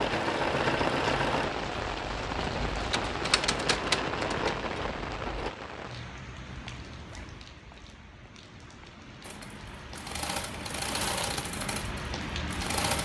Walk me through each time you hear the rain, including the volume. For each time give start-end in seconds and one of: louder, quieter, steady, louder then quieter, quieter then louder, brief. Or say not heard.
0.0-13.0 quieter then louder.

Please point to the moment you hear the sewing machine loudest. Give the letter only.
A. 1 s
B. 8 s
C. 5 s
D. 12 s
A.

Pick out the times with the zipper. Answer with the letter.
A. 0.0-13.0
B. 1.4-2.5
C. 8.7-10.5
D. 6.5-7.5
D.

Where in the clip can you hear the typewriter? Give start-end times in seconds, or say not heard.
2.8-4.7.